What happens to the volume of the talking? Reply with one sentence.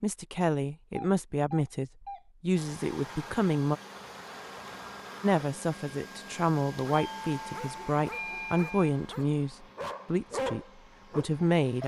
The volume of the talking stays about the same.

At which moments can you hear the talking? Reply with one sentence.
The talking can be heard from 0.0 to 3.8 s and from 5.2 to 11.8 s.